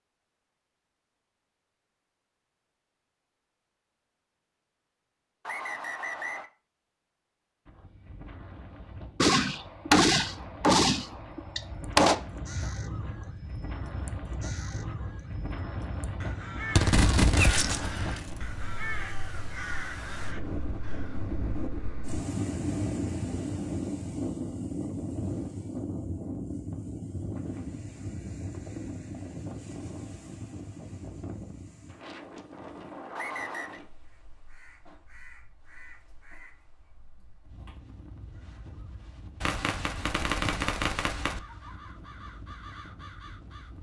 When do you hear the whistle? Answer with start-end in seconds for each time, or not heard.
5.5-6.5, 33.1-33.8.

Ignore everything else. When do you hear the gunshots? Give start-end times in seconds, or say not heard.
9.2-12.2, 16.8-18.4, 39.4-41.4.